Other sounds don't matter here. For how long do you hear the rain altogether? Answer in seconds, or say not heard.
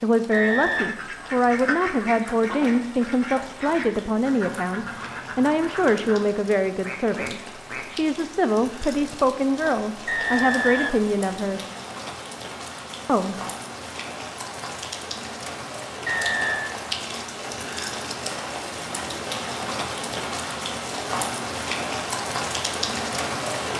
24 s.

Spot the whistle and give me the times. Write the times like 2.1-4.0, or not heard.
0.3-0.9, 10.1-11.1, 16.1-16.8.